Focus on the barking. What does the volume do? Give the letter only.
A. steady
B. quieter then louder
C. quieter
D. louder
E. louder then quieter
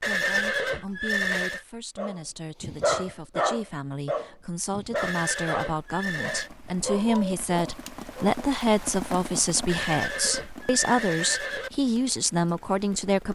B.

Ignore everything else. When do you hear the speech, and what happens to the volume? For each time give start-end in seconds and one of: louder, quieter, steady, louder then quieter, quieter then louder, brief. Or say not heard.
0.0-13.2 louder.